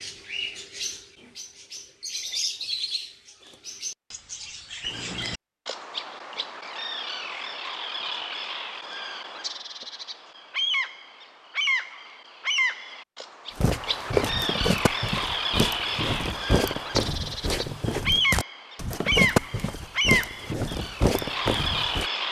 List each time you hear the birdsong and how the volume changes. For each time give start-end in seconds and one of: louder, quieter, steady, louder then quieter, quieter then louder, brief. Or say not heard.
0.0-22.2 louder.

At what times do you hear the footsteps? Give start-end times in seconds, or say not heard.
13.6-22.1.